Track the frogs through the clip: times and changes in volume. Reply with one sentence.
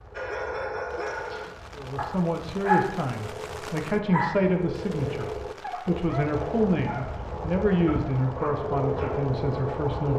You can hear the frogs from 0.0 to 10.1 s, getting louder.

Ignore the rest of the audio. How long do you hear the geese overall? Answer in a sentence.
You can't hear the geese here.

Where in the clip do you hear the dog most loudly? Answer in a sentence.
The volume of the dog peaks at 3 seconds.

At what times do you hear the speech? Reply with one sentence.
The speech can be heard from 1.8 to 10.1 s.